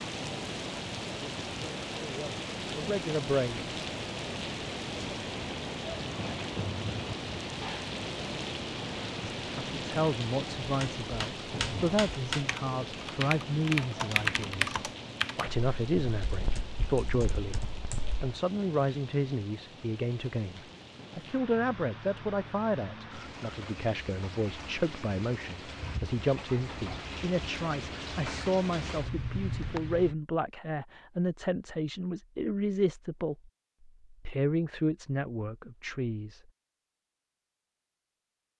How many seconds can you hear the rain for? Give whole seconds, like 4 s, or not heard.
30 s.